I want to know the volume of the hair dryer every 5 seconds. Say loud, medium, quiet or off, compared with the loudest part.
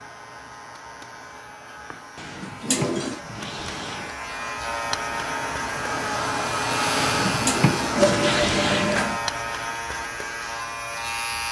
quiet, loud, quiet.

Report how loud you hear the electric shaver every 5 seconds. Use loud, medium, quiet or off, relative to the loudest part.
medium, loud, loud.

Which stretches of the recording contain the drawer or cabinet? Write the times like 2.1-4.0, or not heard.
2.1-4.2, 7.0-8.9.